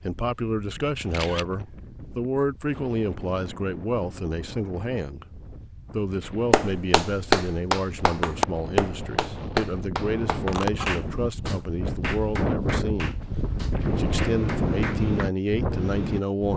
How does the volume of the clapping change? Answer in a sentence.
The loudness of the clapping goes down.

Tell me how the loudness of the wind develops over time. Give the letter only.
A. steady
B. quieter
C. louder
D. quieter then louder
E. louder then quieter
C.